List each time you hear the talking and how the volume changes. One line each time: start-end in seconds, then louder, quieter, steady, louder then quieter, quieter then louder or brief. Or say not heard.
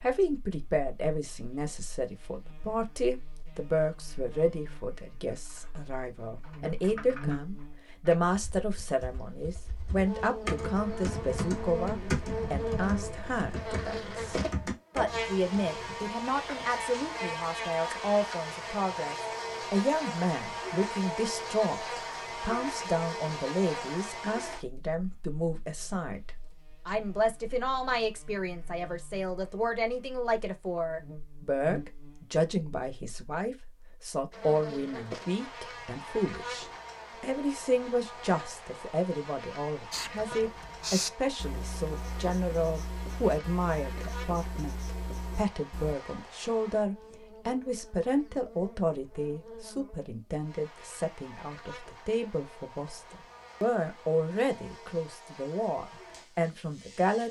0.0-57.2 steady.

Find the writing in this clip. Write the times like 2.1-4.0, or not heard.
39.9-46.0.